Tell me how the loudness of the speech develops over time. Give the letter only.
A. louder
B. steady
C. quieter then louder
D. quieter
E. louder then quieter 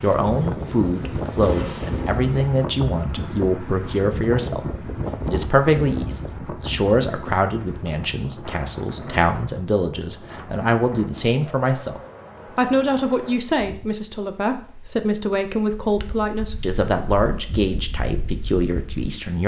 B.